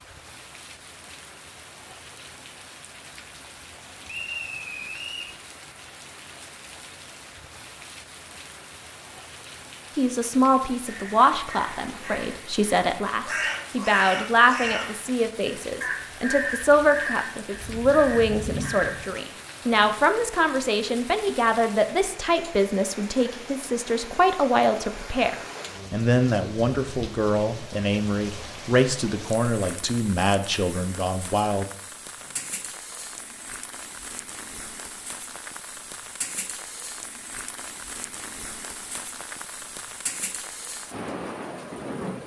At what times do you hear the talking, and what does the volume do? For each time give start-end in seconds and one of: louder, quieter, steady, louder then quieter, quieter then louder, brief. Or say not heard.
9.9-31.6 steady.